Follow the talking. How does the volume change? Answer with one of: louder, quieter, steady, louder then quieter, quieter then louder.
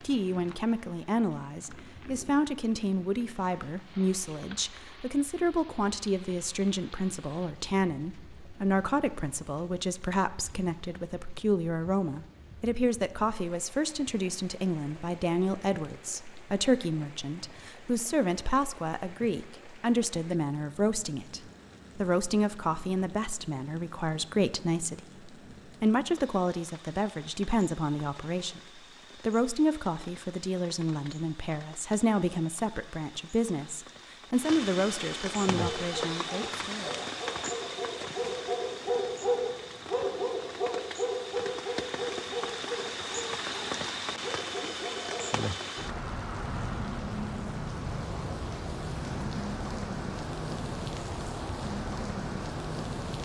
steady.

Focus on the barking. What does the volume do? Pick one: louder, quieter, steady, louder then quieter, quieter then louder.
louder then quieter.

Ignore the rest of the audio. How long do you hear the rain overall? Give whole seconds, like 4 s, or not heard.
53 s.